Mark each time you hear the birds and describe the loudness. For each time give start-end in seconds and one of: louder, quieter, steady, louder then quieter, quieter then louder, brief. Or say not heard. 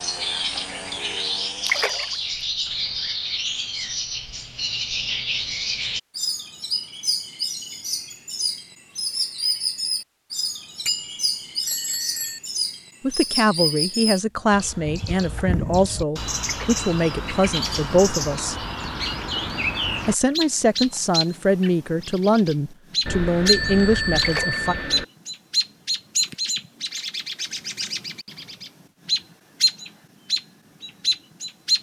0.0-31.7 steady.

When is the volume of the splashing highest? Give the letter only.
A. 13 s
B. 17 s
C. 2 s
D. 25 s
C.